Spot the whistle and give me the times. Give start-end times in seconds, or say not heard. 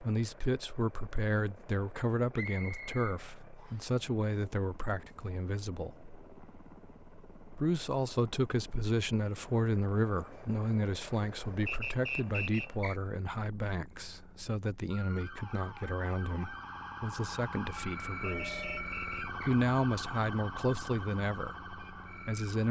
2.3-4.0, 11.7-13.0, 18.2-19.6.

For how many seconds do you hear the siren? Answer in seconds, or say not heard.
8 s.